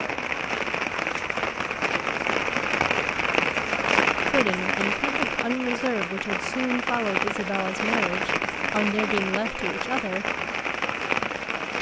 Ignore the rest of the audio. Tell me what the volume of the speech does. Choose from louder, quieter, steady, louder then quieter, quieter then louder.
steady.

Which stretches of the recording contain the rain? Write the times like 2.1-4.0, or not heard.
0.0-11.7.